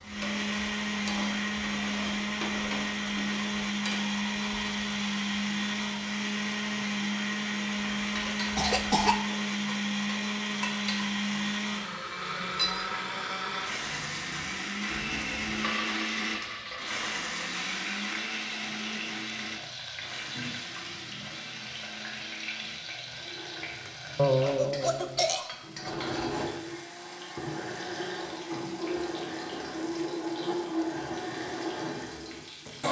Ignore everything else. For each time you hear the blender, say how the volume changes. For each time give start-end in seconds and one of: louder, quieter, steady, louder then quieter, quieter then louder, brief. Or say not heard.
0.0-32.8 quieter then louder.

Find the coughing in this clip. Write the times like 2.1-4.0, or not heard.
8.6-9.2, 24.1-25.4.